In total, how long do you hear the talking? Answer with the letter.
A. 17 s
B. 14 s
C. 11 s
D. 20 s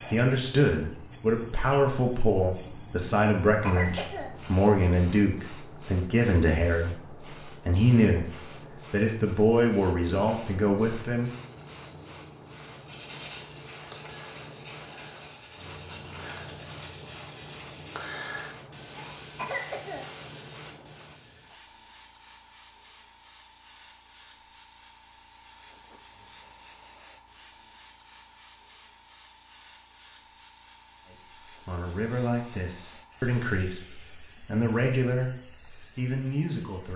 A.